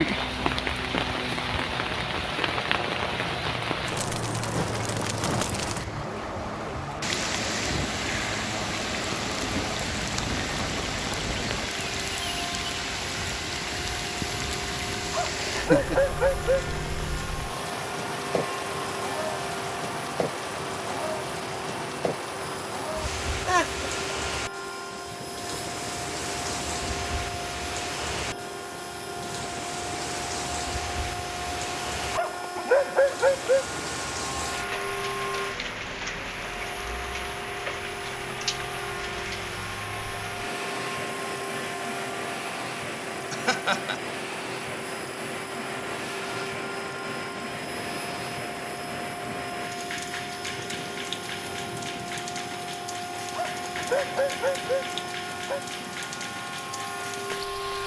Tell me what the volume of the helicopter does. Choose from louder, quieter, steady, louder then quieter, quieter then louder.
steady.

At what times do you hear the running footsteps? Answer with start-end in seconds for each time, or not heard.
not heard.